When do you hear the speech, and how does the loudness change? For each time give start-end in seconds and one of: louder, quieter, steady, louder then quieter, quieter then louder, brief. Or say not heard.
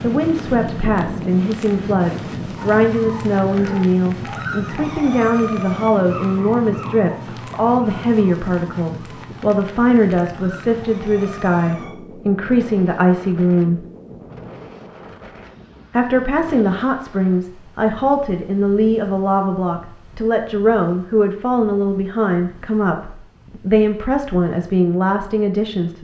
0.0-13.8 steady
15.9-25.9 steady.